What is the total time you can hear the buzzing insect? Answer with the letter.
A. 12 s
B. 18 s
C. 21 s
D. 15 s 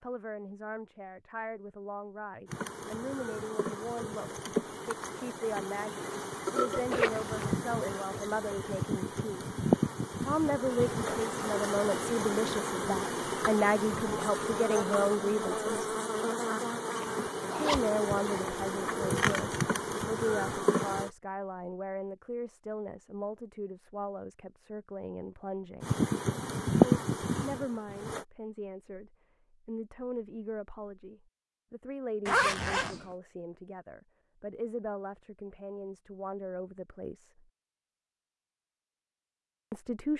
C.